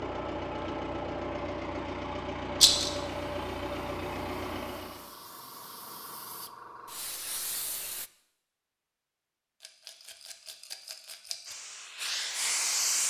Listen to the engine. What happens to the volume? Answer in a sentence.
The loudness of the engine stays about the same.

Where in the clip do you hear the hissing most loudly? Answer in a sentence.
The loudest moment of the hissing is at 13 seconds.